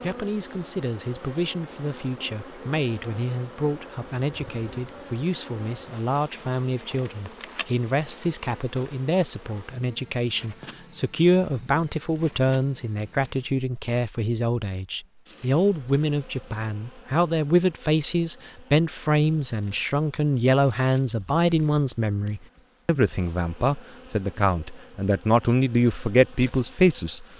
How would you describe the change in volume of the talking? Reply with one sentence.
The volume of the talking goes up.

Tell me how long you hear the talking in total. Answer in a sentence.
The talking can be heard for 27 seconds in total.